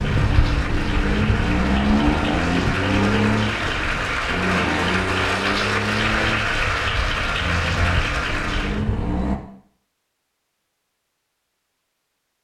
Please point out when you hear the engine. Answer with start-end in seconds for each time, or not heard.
0.0-9.4.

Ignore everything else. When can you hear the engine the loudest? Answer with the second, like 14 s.
2 s.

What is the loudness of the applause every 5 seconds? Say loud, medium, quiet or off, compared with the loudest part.
loud, loud, off.